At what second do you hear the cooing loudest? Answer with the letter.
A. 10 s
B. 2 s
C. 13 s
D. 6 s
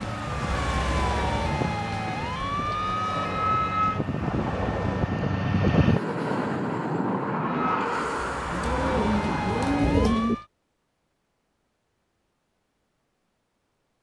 A.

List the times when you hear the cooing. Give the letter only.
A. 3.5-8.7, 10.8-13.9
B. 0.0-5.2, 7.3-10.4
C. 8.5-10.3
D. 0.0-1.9
C.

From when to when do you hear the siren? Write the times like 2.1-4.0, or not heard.
0.0-5.2, 7.3-10.4.